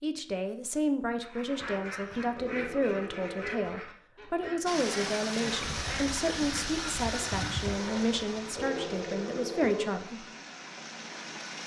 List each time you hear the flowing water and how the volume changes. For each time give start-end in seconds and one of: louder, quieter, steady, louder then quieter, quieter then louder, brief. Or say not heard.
4.7-11.6 quieter.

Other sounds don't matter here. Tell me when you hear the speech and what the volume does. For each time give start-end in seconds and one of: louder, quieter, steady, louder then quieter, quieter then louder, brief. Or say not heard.
0.0-10.2 steady.